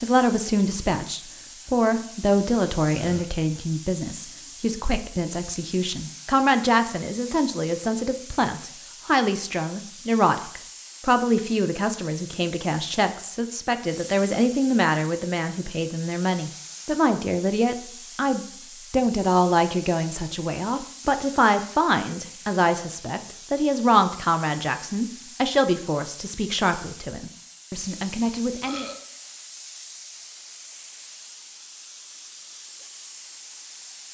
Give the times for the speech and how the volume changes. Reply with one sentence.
You can hear the speech from 0.0 to 28.9 s, at a steady volume.